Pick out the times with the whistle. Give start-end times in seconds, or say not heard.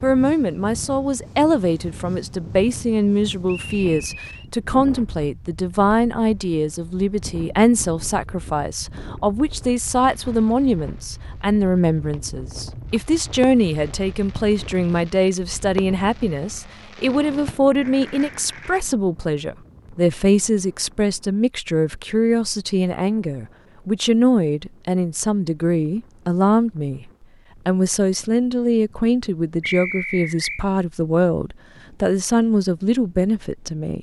3.5-4.5, 29.6-30.6.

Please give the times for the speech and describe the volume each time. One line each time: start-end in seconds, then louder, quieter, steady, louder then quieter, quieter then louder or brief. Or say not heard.
0.0-27.1 steady
27.6-33.9 steady.